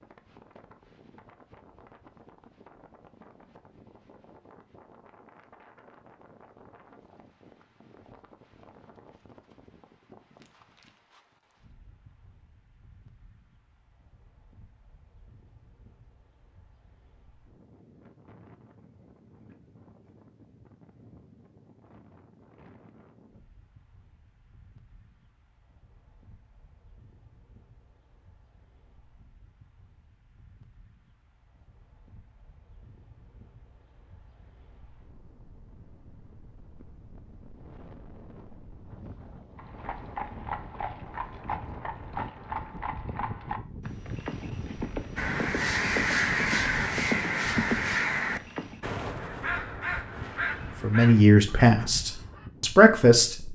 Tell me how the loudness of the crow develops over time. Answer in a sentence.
The volume of the crow goes down.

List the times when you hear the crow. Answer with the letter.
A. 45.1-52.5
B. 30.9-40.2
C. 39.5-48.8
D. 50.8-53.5
A.